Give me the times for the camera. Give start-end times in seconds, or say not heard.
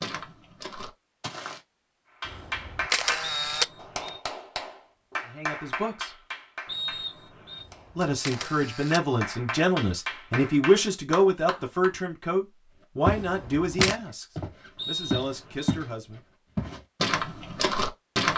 2.2-4.1, 7.6-9.0, 13.2-13.9.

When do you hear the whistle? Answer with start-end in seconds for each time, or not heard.
3.2-4.2, 6.7-7.7, 14.8-15.8.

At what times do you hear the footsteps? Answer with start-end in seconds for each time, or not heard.
0.0-1.6, 13.1-15.9, 16.6-18.3.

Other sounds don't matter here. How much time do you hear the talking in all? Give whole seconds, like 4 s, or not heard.
9 s.